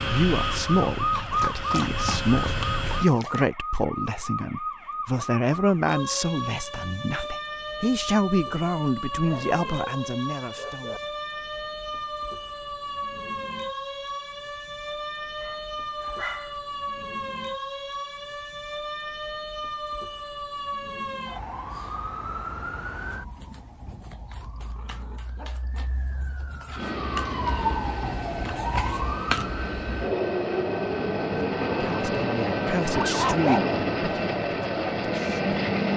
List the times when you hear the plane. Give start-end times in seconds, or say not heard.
0.0-3.1, 26.8-35.9.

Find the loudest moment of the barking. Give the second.
33 s.